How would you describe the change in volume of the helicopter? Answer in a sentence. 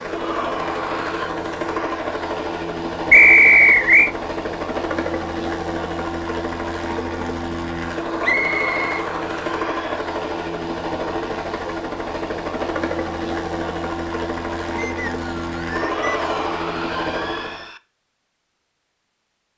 The loudness of the helicopter stays about the same.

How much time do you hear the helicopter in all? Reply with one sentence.
The helicopter can be heard for 18 seconds in total.